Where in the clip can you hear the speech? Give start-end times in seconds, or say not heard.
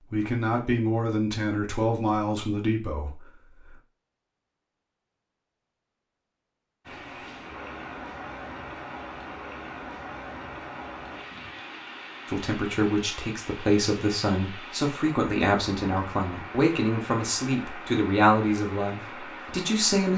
0.1-3.8, 12.3-20.1.